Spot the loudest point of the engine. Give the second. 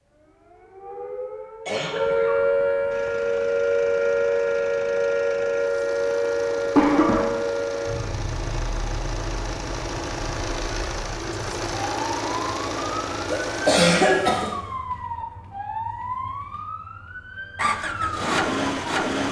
19 s.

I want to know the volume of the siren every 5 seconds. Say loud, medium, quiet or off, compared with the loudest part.
loud, loud, medium, medium.